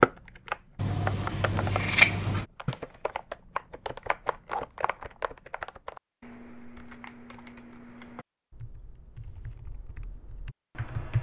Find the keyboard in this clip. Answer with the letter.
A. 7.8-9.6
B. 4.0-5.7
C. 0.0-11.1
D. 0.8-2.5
C.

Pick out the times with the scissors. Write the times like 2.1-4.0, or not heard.
0.8-2.5.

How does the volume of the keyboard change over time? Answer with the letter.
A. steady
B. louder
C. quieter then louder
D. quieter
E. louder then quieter
D.